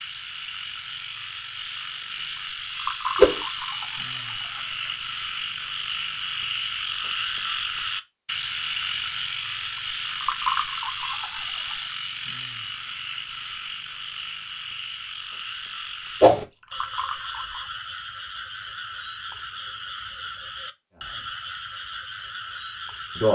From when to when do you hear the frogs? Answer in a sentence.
The frogs can be heard from 0.0 to 23.3 s.